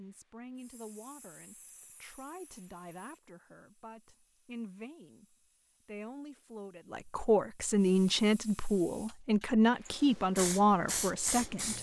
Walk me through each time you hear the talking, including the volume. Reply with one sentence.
The talking can be heard from 0.0 to 11.7 s, getting louder.